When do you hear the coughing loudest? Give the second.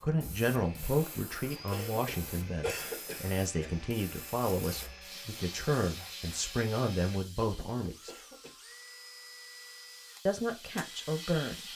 3 s.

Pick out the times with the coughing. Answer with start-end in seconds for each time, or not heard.
1.7-3.6, 8.1-8.6.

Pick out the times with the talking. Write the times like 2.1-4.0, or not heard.
0.0-8.1, 10.2-11.7.